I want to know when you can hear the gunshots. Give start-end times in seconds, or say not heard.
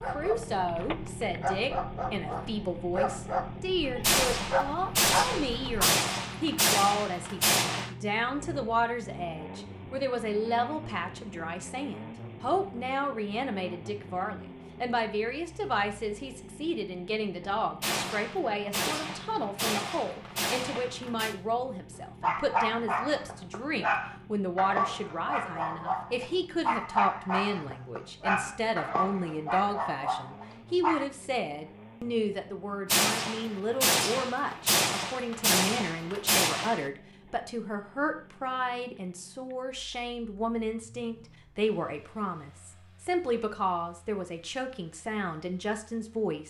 4.0-7.9, 17.8-21.4, 32.9-36.9.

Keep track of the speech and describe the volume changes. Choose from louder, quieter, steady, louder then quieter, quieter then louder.
steady.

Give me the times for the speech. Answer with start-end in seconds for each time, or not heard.
0.1-46.4.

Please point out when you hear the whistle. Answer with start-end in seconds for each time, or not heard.
not heard.